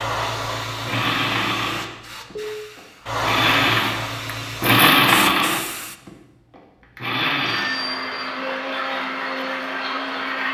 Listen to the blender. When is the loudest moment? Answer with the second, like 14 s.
5 s.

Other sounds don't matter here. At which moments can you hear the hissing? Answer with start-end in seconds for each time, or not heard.
0.0-6.0.